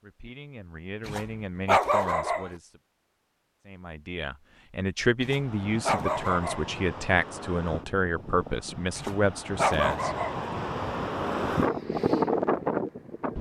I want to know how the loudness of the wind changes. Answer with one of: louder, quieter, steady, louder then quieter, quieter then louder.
louder.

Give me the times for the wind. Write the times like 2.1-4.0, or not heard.
5.3-13.3.